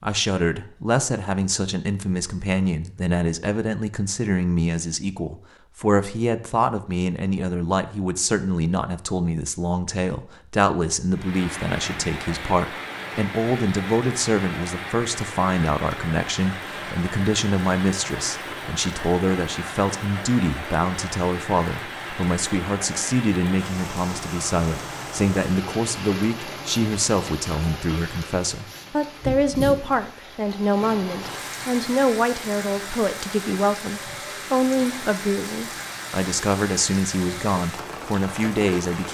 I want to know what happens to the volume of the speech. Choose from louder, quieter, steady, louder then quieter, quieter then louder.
steady.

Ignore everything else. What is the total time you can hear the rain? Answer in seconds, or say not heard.
28 s.